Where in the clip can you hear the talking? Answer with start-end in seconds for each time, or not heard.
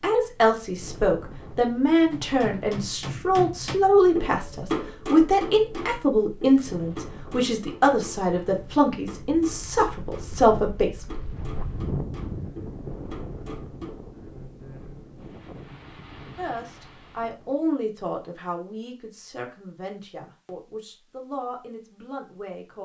0.0-11.1, 16.4-22.8.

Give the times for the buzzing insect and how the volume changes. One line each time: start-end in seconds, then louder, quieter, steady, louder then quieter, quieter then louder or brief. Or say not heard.
not heard.